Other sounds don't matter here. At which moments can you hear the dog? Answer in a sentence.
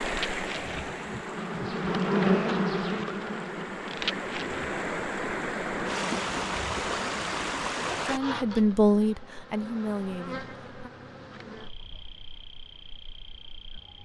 You can't hear the dog here.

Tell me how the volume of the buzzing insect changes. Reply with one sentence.
The volume of the buzzing insect goes down.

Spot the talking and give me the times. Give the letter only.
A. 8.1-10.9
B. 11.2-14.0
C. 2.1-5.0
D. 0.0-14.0
A.